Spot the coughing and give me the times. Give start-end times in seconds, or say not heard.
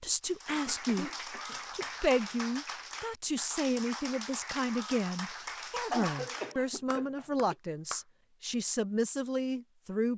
0.5-2.5, 5.9-7.5.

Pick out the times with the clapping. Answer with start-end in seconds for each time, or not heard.
0.2-8.1.